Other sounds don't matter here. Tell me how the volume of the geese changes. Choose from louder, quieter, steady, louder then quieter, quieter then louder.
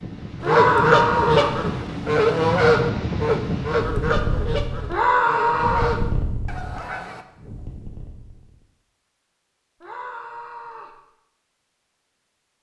quieter.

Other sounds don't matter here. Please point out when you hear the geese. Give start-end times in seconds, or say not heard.
0.4-7.2.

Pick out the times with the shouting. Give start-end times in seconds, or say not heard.
0.4-1.6, 4.8-5.9, 9.8-10.9.